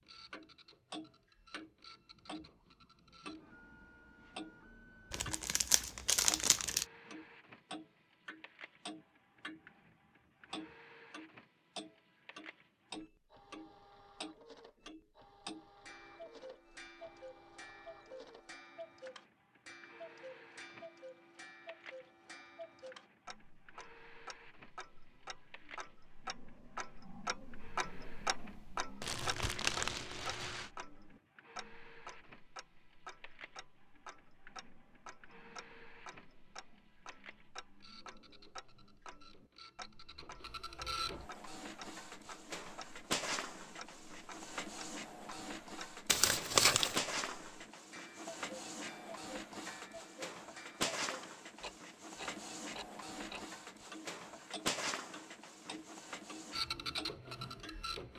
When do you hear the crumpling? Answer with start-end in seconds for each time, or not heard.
5.1-6.8, 29.0-30.7, 46.0-47.0.